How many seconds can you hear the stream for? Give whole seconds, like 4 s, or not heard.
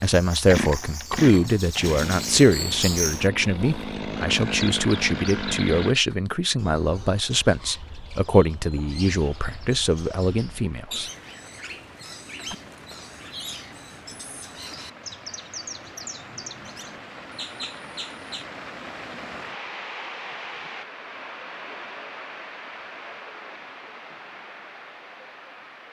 17 s.